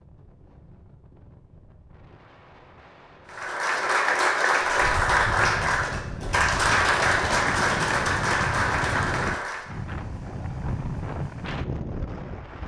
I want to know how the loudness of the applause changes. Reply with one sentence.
The loudness of the applause stays about the same.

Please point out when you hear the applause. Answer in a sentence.
You can hear the applause from 3.2 to 9.8 s.